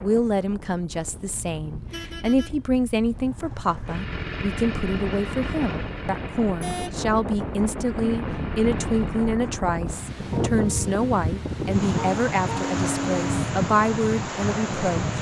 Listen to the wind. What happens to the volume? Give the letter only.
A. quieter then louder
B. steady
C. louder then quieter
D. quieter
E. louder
E.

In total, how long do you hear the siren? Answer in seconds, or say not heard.
not heard.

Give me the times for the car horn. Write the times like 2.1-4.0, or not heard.
1.3-3.3, 6.6-7.0, 11.9-13.4.